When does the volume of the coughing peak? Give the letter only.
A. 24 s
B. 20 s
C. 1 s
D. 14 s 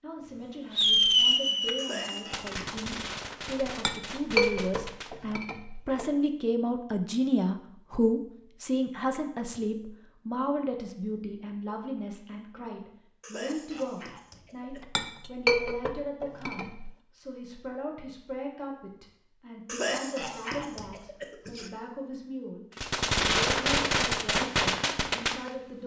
B.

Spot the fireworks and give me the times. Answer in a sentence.
The fireworks can be heard from 0.7 to 5.2 s and from 22.8 to 25.8 s.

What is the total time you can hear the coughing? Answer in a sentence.
The coughing can be heard for 5 seconds in total.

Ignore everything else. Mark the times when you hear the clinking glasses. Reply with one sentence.
You can hear the clinking glasses from 3.7 to 6.0 s and from 14.7 to 16.9 s.